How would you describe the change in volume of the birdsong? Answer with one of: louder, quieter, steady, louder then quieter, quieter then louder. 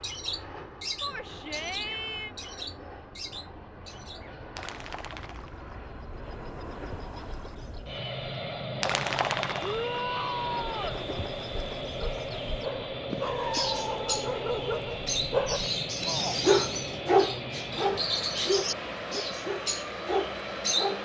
louder.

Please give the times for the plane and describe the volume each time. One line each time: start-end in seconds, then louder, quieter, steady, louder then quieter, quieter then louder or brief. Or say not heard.
0.0-20.9 louder.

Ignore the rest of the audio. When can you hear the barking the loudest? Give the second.
17 s.